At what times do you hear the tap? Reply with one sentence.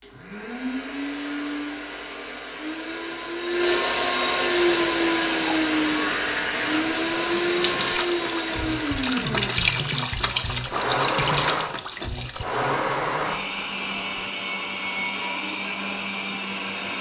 The tap can be heard from 4.5 to 12.4 s.